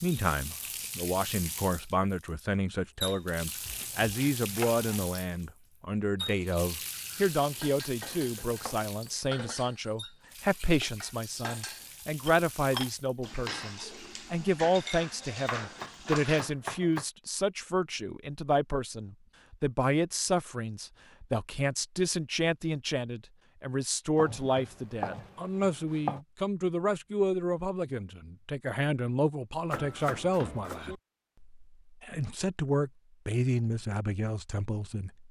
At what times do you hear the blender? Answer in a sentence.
You can't hear the blender here.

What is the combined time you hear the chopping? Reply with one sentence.
You can hear the chopping for 8 seconds altogether.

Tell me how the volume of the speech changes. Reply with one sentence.
The loudness of the speech stays about the same.